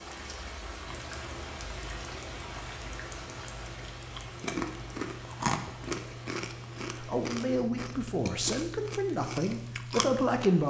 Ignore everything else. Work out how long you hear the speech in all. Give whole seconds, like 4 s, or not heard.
4 s.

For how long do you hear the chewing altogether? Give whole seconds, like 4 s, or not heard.
10 s.